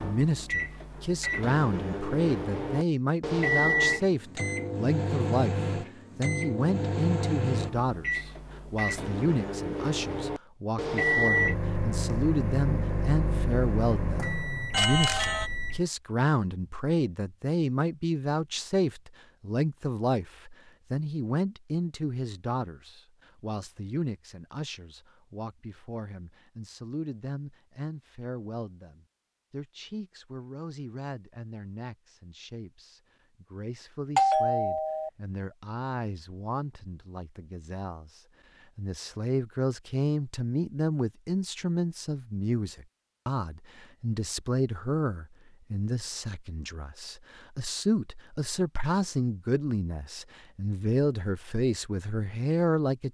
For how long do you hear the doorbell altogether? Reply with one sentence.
You can hear the doorbell for 2 seconds altogether.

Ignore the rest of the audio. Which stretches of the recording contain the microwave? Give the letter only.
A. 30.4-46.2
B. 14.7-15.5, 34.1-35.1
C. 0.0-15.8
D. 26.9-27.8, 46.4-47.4
C.